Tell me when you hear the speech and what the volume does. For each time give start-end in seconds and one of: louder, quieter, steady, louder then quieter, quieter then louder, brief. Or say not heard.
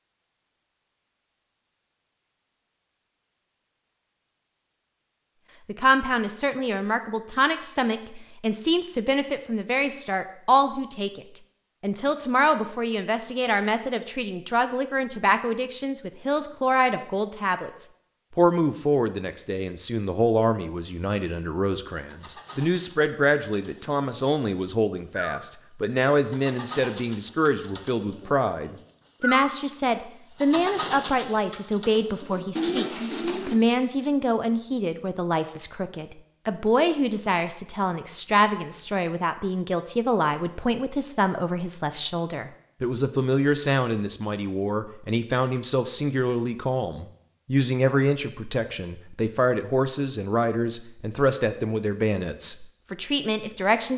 5.7-53.9 steady.